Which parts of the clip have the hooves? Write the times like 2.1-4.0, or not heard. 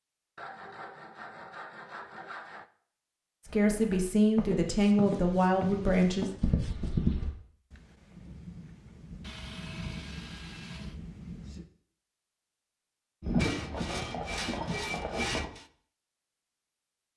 3.5-7.3, 13.2-15.5.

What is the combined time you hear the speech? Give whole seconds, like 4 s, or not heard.
3 s.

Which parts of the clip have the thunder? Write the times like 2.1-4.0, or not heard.
7.7-11.7.